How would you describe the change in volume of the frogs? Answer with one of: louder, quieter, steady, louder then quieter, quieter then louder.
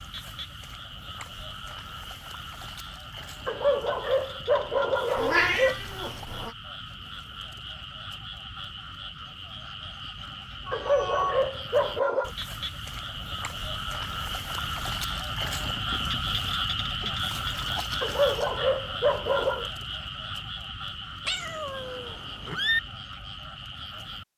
louder then quieter.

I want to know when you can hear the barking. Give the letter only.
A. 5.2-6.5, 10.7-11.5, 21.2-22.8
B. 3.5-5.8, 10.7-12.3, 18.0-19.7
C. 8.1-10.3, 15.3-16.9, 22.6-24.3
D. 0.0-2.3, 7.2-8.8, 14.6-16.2
B.